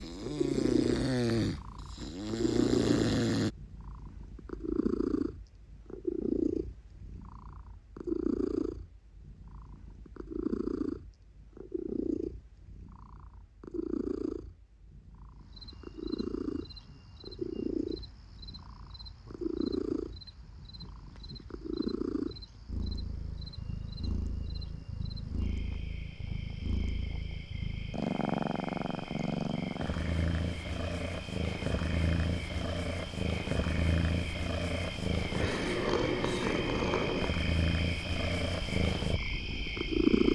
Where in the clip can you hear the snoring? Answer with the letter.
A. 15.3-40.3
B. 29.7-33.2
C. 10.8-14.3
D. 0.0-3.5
D.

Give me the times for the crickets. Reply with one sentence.
You can hear the crickets from 15.3 to 40.3 s.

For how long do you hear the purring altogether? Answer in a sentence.
The purring can be heard for 40 seconds in total.